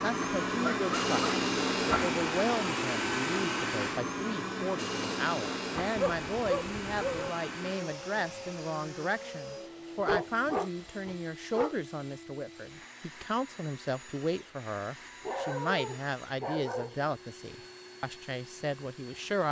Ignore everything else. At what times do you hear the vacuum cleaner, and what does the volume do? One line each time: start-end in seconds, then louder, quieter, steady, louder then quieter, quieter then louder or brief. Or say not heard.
0.0-19.4 quieter.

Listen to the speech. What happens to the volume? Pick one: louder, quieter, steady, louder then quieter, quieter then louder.
steady.